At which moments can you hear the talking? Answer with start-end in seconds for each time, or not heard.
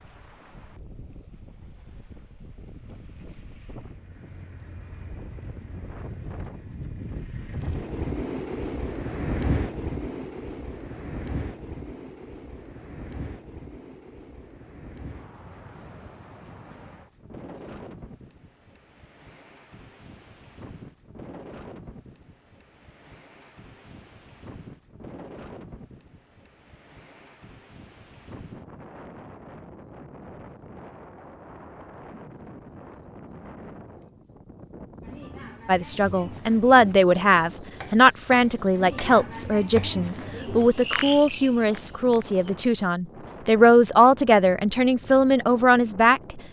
35.6-46.4.